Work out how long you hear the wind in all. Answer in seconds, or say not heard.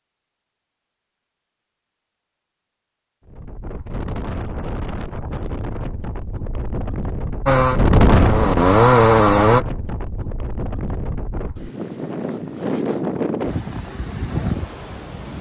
12 s.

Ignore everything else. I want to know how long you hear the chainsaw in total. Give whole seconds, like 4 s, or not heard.
2 s.